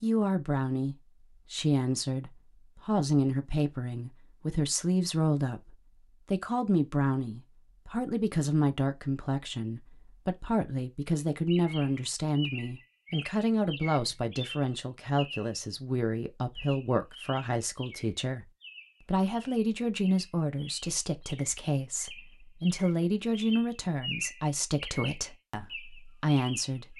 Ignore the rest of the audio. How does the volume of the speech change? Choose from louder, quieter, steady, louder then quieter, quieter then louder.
steady.